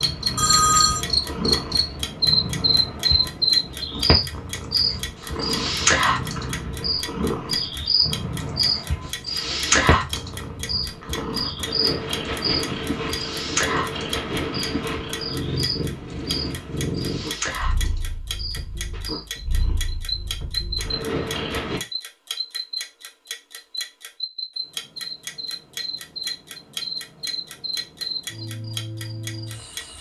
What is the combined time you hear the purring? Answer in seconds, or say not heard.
22 s.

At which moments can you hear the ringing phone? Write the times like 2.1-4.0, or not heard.
0.3-1.1.